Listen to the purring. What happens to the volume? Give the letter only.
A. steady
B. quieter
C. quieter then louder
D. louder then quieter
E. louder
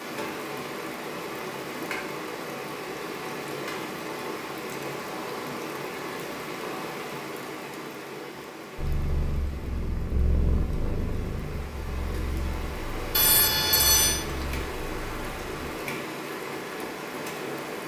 B.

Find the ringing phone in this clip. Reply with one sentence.
You can hear the ringing phone from 13.1 to 14.2 s.